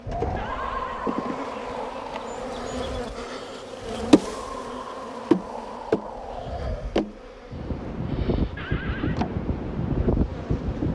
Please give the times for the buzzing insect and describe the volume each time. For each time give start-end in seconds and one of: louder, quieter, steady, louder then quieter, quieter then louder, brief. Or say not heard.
0.0-10.9 louder then quieter.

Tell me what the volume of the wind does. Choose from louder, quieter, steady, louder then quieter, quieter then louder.
quieter then louder.